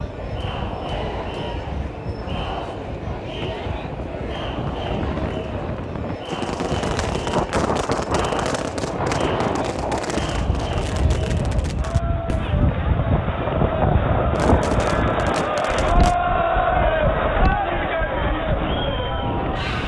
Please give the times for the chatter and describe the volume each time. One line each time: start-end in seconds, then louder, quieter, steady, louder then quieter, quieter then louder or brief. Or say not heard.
0.0-19.8 louder.